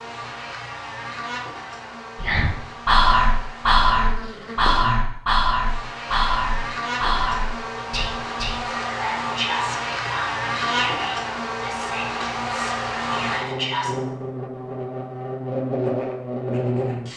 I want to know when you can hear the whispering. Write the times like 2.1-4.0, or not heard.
2.1-13.9.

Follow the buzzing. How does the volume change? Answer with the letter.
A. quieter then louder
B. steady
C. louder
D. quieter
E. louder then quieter
C.